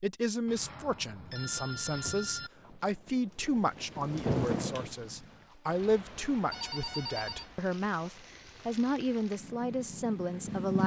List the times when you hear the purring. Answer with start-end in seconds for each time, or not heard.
9.3-10.8.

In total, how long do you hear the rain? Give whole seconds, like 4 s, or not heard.
8 s.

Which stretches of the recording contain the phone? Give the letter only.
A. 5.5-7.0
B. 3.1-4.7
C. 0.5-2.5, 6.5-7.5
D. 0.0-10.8
C.